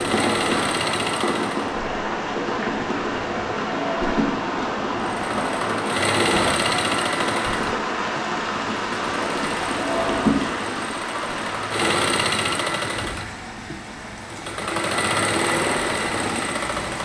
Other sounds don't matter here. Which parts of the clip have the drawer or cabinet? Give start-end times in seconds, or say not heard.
3.6-4.5, 9.8-10.4.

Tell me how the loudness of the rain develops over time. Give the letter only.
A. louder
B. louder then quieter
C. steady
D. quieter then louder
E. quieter
E.